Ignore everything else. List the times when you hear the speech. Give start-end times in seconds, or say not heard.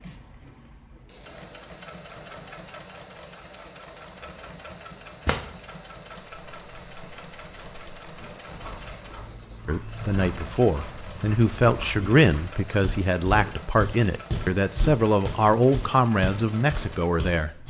9.7-17.6.